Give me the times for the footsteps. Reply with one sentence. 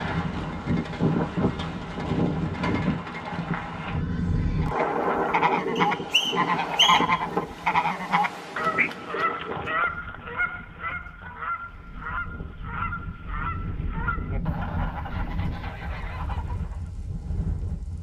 You can't hear the footsteps here.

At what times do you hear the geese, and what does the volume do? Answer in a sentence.
You can hear the geese from 4.6 to 16.9 s, getting quieter.